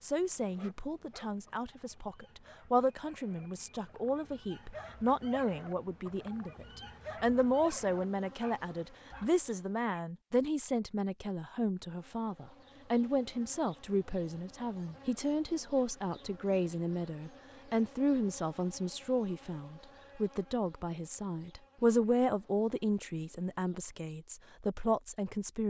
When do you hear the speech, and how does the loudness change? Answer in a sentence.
The speech can be heard from 0.0 to 25.6 s, at a steady volume.